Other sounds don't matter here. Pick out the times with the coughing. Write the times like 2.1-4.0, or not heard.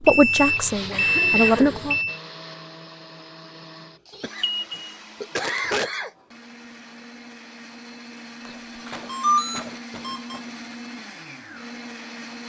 0.1-1.9, 4.2-6.1, 8.4-10.6.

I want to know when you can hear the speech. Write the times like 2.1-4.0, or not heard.
0.0-1.9.